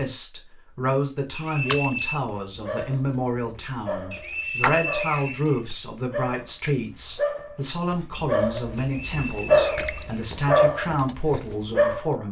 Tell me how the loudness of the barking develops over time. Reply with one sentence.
The loudness of the barking goes up.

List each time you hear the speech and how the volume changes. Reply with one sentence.
The speech can be heard from 0.0 to 12.2 s, at a steady volume.